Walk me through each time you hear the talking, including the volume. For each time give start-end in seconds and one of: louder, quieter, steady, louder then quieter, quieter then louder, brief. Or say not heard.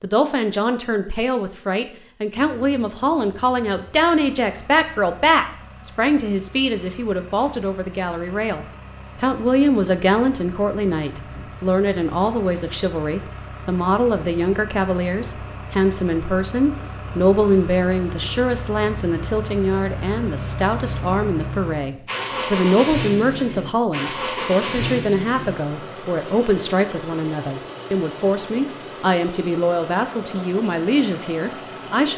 0.0-32.1 steady.